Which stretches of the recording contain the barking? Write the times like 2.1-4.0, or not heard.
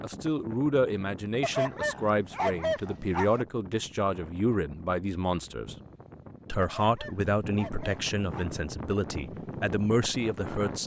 1.4-3.5, 6.6-8.6.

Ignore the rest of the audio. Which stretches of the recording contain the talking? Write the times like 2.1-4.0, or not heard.
0.0-5.8, 6.5-10.8.